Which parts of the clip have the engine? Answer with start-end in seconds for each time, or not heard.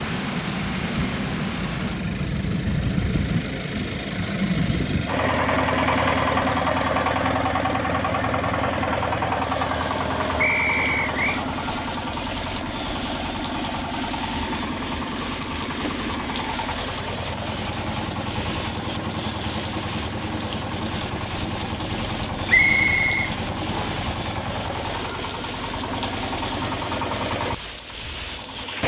0.0-28.8.